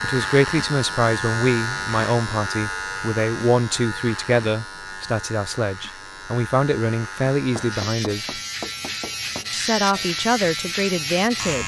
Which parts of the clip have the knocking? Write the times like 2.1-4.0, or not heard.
7.5-9.5.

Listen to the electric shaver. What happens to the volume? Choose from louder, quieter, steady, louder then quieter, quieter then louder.
quieter then louder.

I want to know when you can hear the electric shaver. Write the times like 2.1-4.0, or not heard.
0.0-11.6.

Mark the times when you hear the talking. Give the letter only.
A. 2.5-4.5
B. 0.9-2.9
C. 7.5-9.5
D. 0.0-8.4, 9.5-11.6
D.